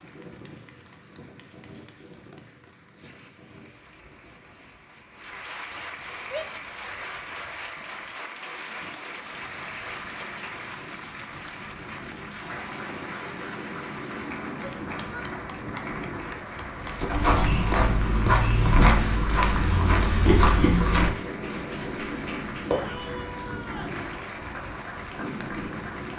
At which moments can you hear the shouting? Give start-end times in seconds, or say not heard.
6.2-6.7, 14.5-15.2, 22.6-24.0.